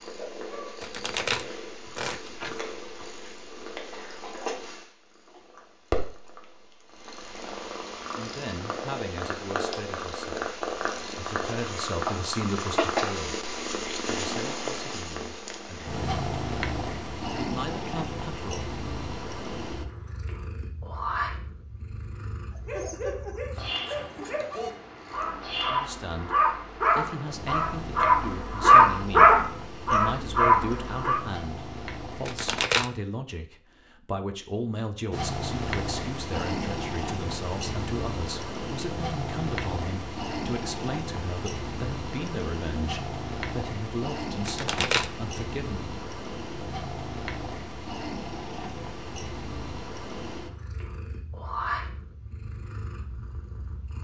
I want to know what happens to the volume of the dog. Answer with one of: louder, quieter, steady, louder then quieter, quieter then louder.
louder.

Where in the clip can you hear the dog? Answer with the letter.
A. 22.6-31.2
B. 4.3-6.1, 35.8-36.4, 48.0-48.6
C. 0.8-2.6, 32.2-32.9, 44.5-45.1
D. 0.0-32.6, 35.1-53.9
A.